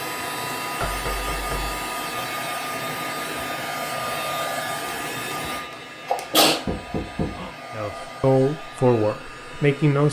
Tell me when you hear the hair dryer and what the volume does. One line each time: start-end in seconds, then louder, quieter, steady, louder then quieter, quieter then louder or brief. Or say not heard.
0.0-10.0 quieter.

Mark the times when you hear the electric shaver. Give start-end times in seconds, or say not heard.
not heard.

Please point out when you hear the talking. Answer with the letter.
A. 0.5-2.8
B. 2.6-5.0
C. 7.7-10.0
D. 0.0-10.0
C.